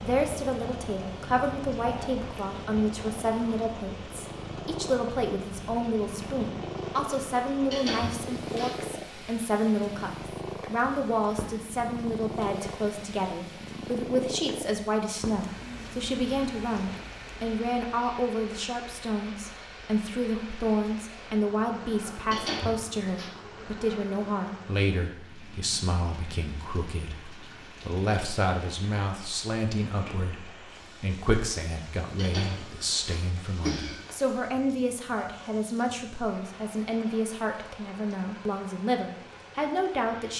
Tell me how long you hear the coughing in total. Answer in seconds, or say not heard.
4 s.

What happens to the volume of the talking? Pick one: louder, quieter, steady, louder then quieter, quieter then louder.
steady.